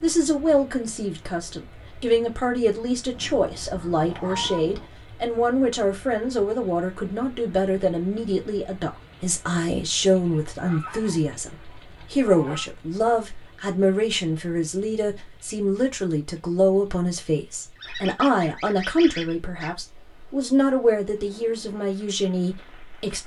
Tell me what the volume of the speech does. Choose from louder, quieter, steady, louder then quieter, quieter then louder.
steady.